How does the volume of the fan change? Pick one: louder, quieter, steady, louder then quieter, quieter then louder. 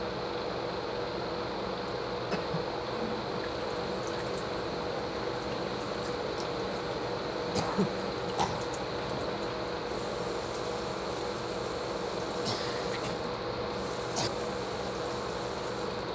steady.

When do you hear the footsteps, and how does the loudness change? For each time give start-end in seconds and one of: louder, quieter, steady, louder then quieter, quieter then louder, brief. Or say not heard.
not heard.